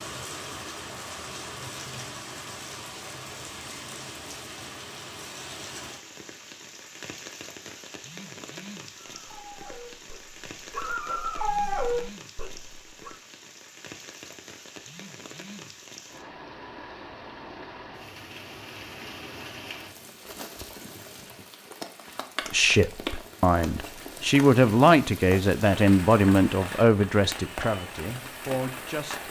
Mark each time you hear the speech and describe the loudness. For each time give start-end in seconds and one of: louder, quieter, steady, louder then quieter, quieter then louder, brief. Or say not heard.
22.5-29.2 louder then quieter.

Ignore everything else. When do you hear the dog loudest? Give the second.
12 s.